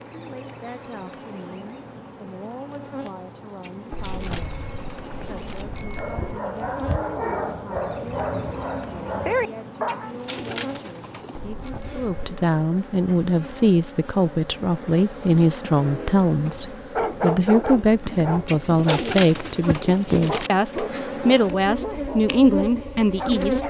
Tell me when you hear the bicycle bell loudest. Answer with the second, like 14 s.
4 s.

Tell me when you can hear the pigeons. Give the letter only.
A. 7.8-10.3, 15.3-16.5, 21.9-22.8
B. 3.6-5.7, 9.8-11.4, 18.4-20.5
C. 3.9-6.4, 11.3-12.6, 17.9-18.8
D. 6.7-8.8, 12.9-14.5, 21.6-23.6
B.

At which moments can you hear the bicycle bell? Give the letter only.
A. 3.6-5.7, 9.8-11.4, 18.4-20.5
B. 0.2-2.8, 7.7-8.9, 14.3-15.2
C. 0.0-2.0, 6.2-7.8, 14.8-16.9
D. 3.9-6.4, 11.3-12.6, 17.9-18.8
D.